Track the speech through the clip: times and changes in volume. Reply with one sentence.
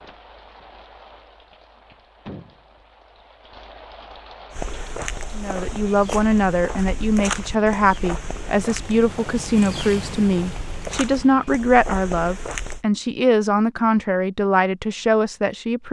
You can hear the speech from 5.3 to 15.8 s, at a steady volume.